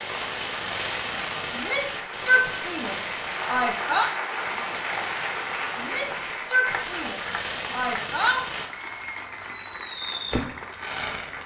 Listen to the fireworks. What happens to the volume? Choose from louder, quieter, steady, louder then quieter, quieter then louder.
quieter then louder.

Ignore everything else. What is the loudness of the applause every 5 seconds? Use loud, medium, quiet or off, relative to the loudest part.
loud, loud, medium.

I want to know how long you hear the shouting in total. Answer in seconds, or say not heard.
5 s.